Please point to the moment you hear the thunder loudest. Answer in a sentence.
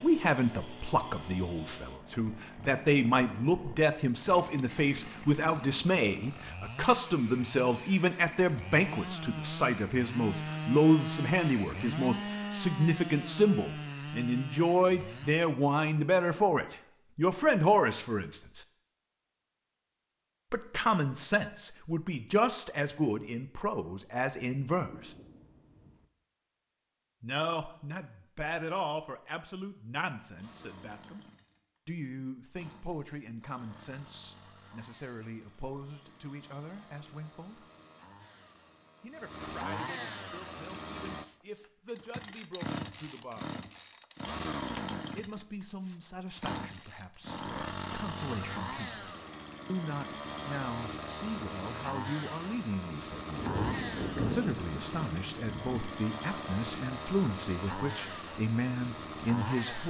The volume of the thunder peaks at 54 seconds.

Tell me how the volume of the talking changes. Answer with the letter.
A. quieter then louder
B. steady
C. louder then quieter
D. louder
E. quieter
A.